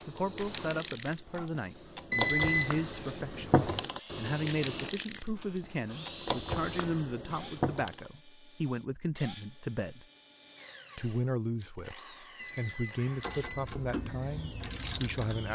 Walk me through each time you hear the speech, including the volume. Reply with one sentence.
The speech can be heard from 0.1 to 10.1 s, at a steady volume; and from 10.9 to 15.5 s, at a steady volume.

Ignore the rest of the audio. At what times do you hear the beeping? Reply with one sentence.
The beeping can be heard from 2.1 to 2.8 s and from 12.3 to 13.7 s.